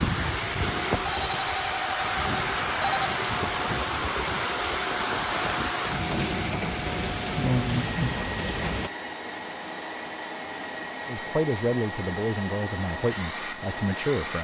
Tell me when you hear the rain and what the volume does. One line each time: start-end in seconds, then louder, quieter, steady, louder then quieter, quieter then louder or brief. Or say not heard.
0.0-8.9 steady.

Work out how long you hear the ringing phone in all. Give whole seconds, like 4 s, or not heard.
2 s.